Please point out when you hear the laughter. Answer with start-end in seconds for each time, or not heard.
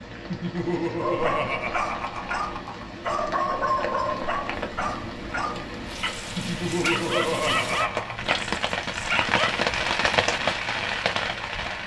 0.3-2.9, 6.3-8.2.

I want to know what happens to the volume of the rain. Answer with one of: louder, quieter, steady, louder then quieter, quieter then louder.
louder.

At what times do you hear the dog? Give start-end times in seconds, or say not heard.
0.9-9.6.